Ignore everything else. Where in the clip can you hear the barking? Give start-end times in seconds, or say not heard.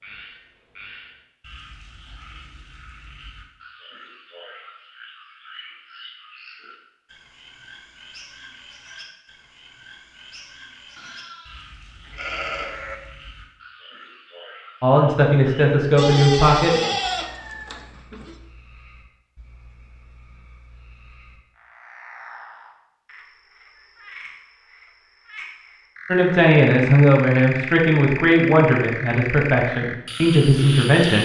not heard.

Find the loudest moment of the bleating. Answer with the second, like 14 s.
17 s.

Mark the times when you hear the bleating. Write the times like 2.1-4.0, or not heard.
10.9-12.9, 15.9-18.4.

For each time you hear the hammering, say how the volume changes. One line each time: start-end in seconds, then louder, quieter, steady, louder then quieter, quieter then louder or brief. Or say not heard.
not heard.